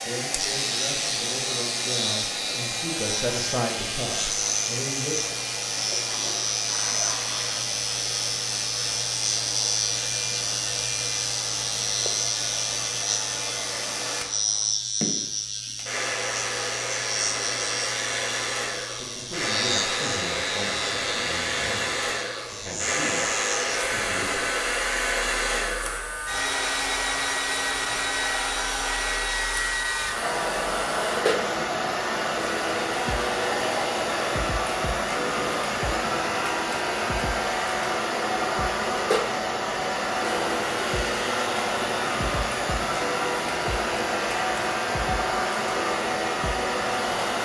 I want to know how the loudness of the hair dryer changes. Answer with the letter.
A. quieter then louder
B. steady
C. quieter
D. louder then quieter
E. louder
E.